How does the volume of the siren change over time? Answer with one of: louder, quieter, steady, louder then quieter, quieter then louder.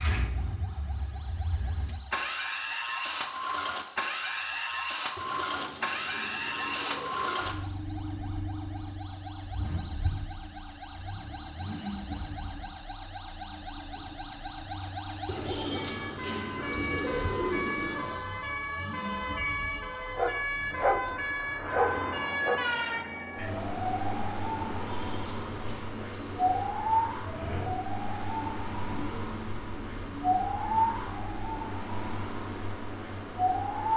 louder.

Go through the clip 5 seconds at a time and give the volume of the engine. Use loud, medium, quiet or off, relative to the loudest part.
loud, loud, medium, medium, medium, medium, medium.